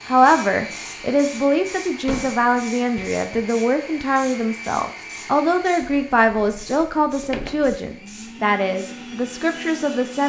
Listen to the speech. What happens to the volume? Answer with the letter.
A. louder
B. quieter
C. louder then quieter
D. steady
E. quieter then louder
D.